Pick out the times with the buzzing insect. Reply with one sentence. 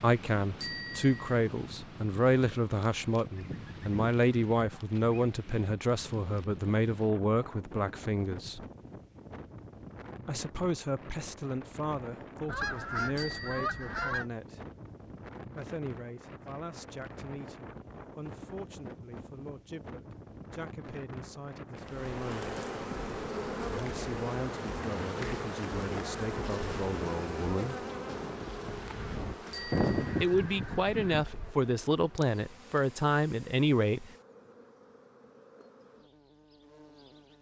The buzzing insect can be heard from 21.8 to 37.3 s.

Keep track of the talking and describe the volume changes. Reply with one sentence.
The volume of the talking goes down, then up.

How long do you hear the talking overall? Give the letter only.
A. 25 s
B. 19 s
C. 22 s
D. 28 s
D.